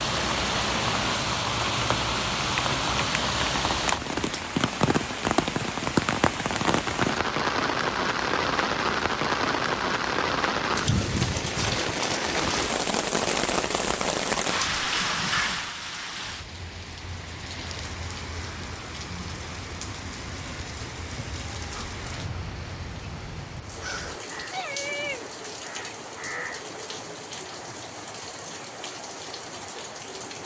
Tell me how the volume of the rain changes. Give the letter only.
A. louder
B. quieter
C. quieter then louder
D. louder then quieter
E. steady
B.